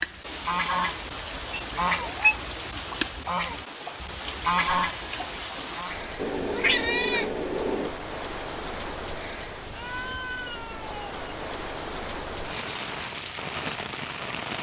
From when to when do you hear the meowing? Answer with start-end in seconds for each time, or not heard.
1.5-2.4, 6.2-8.0, 9.7-11.1.